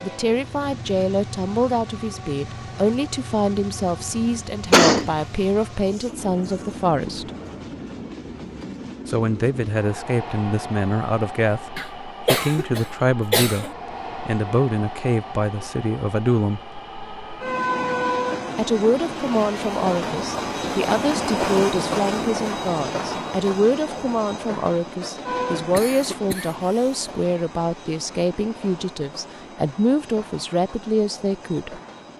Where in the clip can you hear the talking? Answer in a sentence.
You can hear the talking from 0.0 to 7.3 s, from 9.1 to 13.7 s, from 14.2 to 16.6 s and from 18.6 to 31.8 s.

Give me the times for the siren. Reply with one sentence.
The siren can't be heard in this clip.